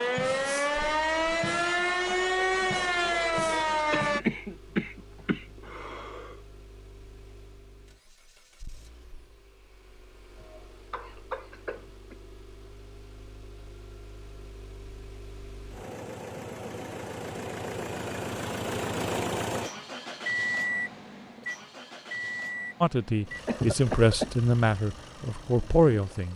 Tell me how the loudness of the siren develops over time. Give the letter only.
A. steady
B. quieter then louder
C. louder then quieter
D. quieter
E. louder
A.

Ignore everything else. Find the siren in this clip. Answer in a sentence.
You can hear the siren from 0.0 to 4.2 s.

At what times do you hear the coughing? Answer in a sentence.
The coughing can be heard from 3.9 to 6.3 s, from 10.3 to 12.2 s and from 23.4 to 24.4 s.